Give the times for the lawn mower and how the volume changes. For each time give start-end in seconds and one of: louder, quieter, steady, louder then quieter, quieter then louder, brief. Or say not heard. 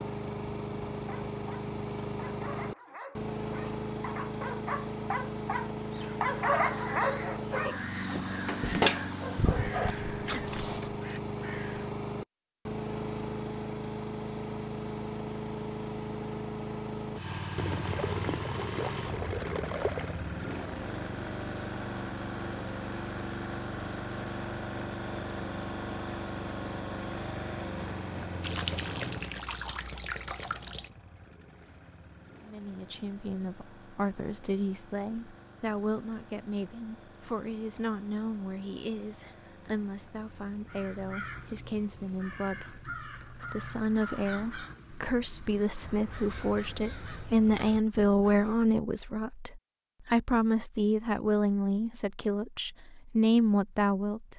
0.0-47.5 quieter.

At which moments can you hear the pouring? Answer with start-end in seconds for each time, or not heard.
17.6-20.2, 28.4-30.9.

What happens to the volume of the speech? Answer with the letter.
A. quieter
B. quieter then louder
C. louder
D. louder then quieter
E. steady
C.